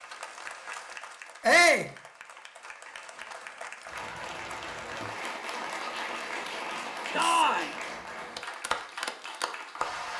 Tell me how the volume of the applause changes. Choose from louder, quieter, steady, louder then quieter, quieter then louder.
louder.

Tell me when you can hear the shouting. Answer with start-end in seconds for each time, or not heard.
1.4-1.9, 7.2-7.7.